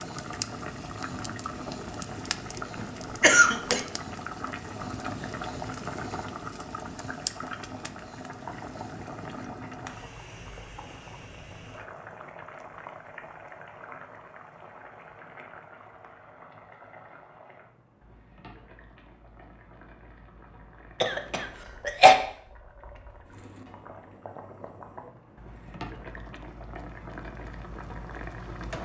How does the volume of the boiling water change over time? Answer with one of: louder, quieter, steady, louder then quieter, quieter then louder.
quieter then louder.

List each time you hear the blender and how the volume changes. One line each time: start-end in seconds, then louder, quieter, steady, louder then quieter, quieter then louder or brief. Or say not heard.
not heard.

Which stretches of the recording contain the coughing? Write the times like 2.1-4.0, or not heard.
2.8-3.9, 21.0-22.1.